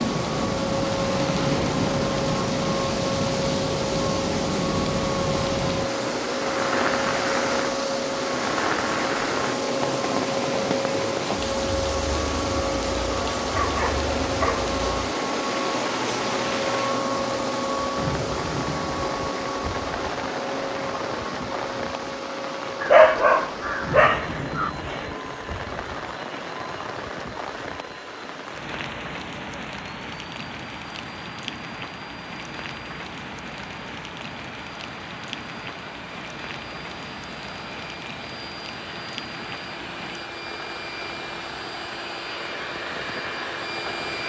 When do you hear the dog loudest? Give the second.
23 s.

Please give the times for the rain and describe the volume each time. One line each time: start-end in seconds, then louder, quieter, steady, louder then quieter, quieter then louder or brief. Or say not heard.
0.0-44.2 quieter.